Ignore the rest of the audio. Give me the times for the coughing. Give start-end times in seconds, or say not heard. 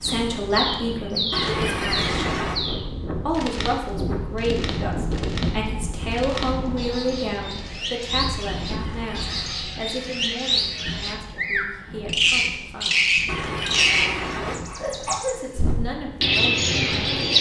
1.3-2.6, 8.8-9.6, 13.2-15.5.